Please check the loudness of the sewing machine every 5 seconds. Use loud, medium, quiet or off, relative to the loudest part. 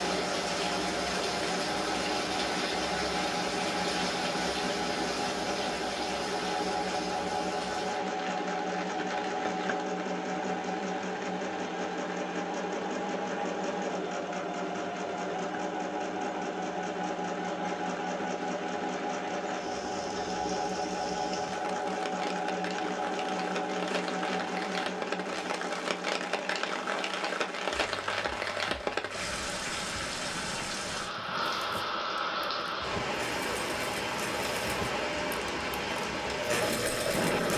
loud, loud, loud, loud, loud, medium, medium, loud.